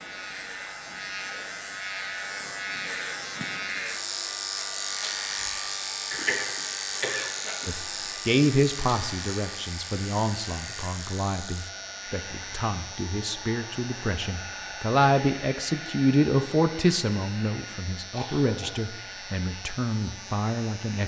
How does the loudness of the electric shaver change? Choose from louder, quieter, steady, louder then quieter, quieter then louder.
quieter.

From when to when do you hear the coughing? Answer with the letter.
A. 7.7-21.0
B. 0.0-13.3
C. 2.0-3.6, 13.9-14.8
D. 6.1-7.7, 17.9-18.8
D.